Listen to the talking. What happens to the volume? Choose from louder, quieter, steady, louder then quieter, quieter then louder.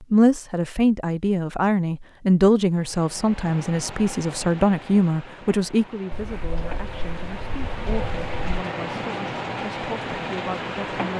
quieter.